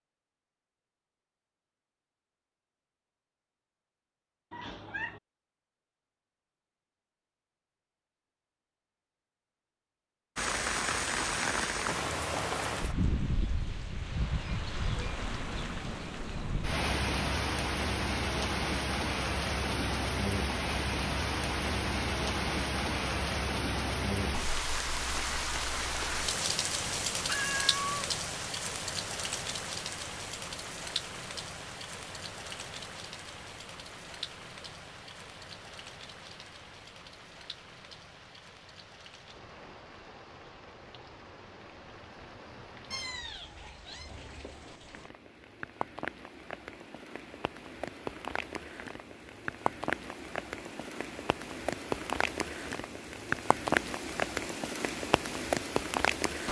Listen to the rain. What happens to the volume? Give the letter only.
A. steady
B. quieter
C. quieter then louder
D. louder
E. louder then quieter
C.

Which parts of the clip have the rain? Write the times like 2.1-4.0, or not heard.
10.3-56.4.